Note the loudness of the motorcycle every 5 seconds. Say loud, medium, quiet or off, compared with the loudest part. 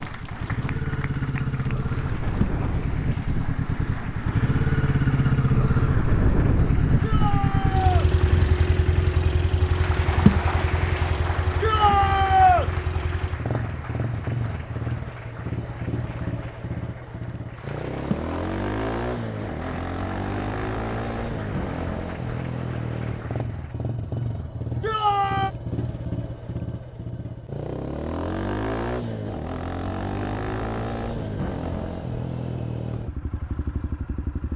loud, loud, medium, medium, medium, medium, medium.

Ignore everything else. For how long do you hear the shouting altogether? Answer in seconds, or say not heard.
3 s.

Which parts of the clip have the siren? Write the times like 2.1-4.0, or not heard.
not heard.